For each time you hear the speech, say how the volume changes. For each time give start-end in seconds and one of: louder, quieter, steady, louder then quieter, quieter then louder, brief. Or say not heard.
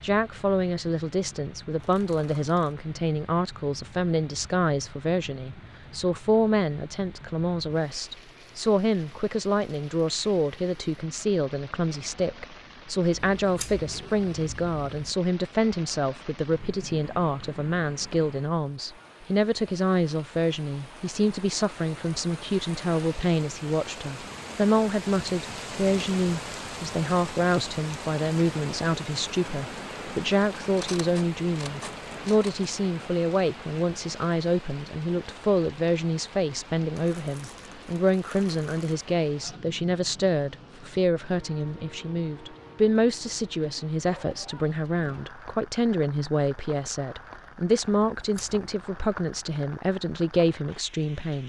0.0-51.4 steady.